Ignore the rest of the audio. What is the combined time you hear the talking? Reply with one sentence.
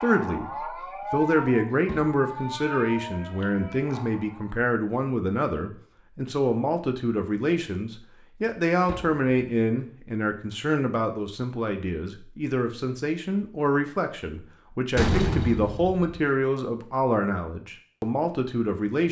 You can hear the talking for 19 seconds altogether.